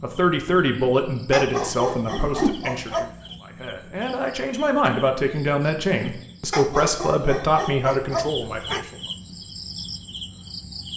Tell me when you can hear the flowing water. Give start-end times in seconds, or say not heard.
not heard.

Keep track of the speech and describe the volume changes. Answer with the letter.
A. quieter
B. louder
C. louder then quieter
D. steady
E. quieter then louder
E.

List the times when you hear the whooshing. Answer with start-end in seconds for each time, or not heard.
2.1-2.6.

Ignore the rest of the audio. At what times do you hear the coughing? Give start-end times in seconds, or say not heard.
not heard.